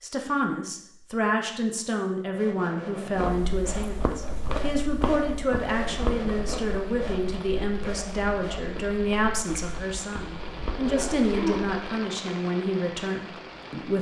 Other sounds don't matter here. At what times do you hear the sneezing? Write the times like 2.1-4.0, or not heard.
10.4-11.8.